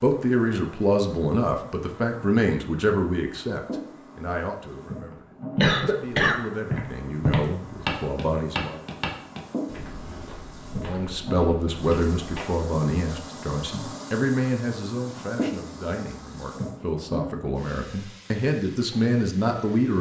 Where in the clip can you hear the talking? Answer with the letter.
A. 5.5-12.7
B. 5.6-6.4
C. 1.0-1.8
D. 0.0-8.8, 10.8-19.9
D.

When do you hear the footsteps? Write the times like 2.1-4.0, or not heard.
5.5-12.7.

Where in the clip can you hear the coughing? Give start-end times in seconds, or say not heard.
5.6-6.4.